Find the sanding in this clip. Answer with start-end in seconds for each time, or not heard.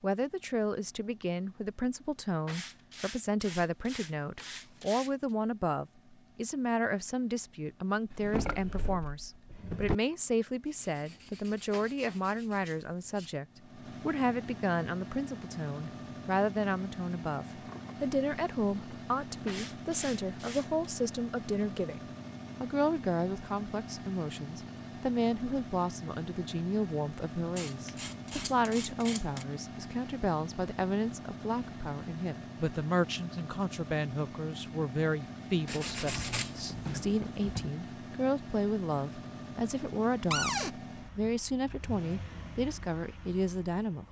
2.5-5.3, 10.7-13.3, 19.4-20.9, 27.6-29.4, 35.6-37.7.